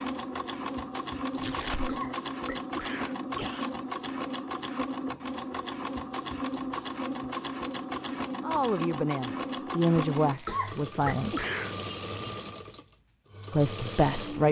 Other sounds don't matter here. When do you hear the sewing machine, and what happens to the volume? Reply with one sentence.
You can hear the sewing machine from 0.0 to 14.4 s, at a steady volume.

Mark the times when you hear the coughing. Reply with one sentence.
The coughing can be heard from 1.7 to 3.7 s and from 10.2 to 11.8 s.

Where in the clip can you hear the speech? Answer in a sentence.
You can hear the speech from 8.4 to 11.3 s and from 13.5 to 14.4 s.